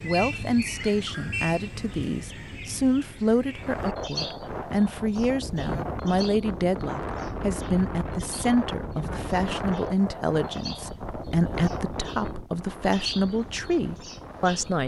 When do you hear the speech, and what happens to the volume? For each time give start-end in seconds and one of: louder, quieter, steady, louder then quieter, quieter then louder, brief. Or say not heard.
0.0-14.8 steady.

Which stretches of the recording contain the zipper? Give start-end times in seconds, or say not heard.
not heard.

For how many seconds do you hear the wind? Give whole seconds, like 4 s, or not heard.
11 s.